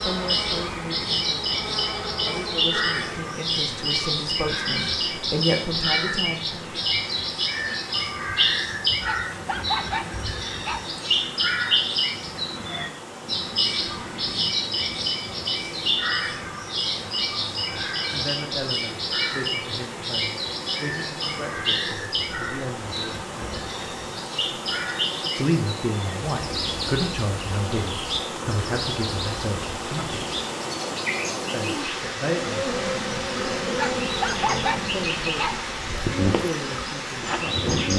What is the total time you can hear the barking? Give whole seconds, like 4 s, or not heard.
4 s.